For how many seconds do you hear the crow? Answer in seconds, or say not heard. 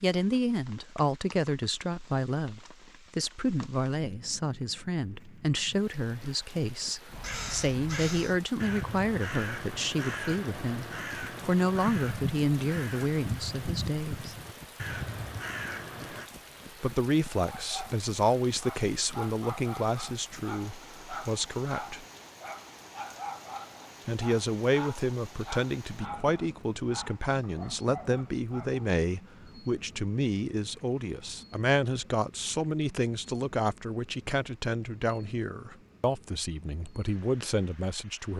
9 s.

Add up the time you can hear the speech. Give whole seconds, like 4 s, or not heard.
34 s.